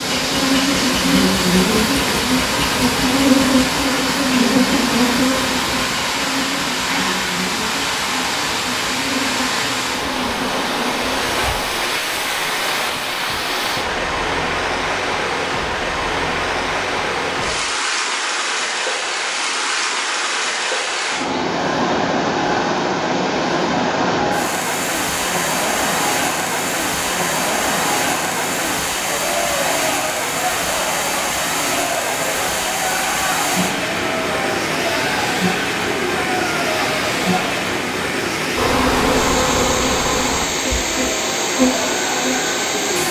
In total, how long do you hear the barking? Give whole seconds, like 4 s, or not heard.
not heard.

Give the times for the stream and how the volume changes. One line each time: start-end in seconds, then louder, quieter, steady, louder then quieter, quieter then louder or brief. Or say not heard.
0.0-43.0 steady.